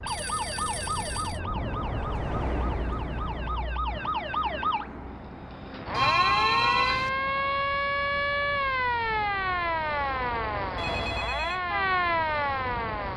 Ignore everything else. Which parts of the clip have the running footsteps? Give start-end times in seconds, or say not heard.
not heard.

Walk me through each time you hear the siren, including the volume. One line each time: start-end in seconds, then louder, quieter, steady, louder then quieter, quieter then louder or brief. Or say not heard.
0.0-13.1 louder.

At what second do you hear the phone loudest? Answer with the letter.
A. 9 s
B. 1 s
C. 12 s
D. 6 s
D.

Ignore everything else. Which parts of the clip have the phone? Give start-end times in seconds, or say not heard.
0.1-1.4, 5.9-7.1, 10.8-11.6.